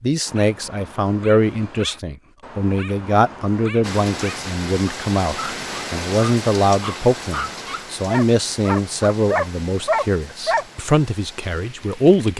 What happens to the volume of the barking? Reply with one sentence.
The volume of the barking goes up.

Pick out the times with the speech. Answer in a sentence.
You can hear the speech from 0.0 to 12.3 s.